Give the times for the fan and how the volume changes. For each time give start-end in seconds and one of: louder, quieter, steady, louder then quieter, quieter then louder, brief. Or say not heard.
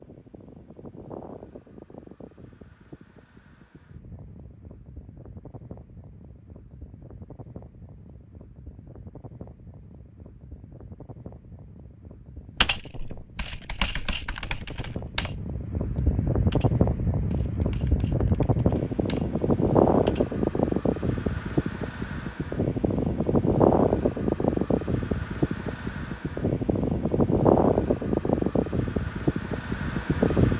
0.0-30.5 louder.